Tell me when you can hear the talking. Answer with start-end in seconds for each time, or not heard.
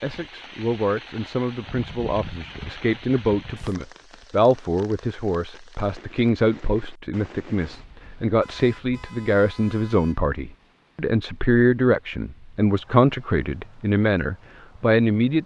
0.0-15.4.